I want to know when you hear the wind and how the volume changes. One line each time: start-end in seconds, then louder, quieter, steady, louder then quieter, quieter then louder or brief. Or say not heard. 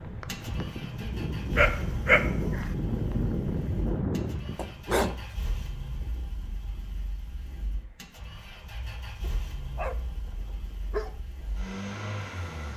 0.0-12.7 quieter.